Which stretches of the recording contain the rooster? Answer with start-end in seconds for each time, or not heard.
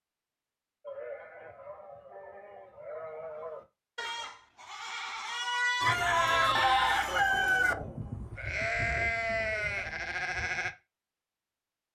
5.8-7.8.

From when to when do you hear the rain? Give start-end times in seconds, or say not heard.
not heard.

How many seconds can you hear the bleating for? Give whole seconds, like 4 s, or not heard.
10 s.